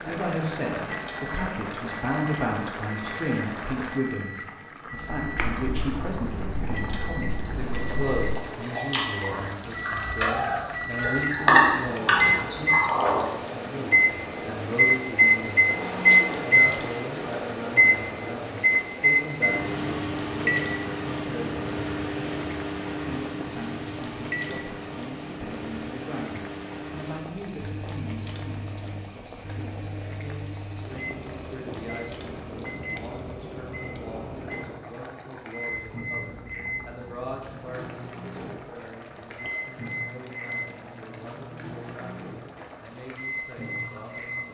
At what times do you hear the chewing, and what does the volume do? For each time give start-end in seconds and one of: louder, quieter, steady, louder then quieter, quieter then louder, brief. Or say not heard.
4.9-13.2 louder.